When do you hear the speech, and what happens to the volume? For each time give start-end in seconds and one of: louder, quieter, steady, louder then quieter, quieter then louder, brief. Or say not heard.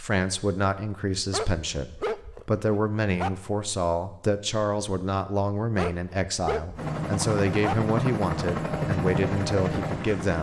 0.0-10.3 steady.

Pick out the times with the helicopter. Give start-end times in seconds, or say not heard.
6.8-10.3.